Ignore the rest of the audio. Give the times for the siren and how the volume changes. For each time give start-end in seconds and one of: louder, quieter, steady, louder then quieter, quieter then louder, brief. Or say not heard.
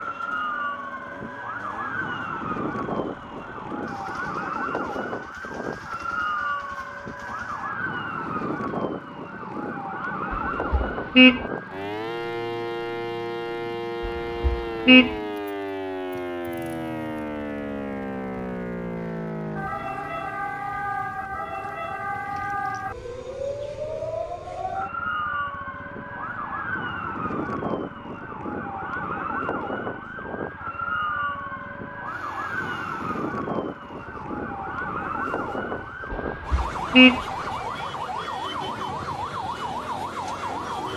0.0-40.9 steady.